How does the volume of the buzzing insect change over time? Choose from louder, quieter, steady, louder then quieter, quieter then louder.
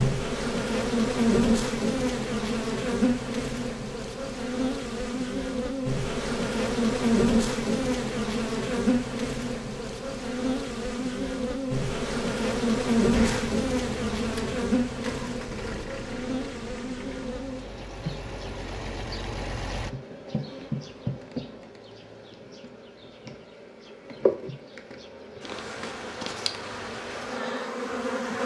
quieter.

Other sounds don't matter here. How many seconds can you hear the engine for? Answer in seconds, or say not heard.
7 s.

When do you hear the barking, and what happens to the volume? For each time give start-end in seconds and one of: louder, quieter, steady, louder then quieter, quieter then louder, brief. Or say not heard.
not heard.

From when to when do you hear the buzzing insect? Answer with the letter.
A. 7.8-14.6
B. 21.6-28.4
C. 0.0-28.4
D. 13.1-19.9
C.